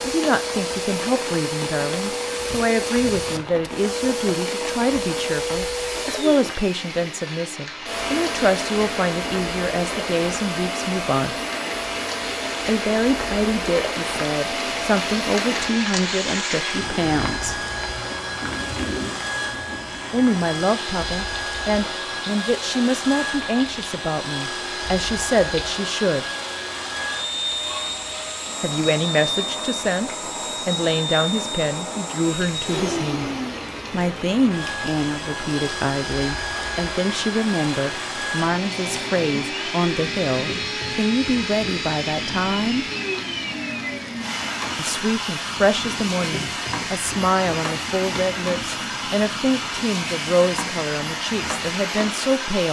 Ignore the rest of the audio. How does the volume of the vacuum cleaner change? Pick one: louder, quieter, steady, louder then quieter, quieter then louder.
steady.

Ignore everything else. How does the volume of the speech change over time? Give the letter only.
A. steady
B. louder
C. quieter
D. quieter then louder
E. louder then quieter
A.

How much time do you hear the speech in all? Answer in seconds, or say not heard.
44 s.